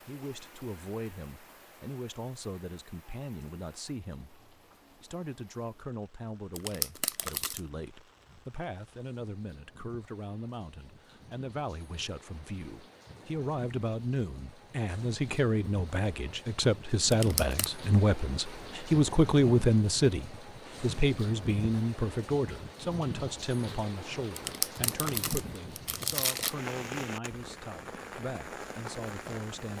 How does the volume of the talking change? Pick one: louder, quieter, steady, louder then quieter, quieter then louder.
louder then quieter.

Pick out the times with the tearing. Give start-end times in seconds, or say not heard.
6.5-7.6, 17.1-17.7, 24.4-26.6.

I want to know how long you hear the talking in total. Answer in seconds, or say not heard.
30 s.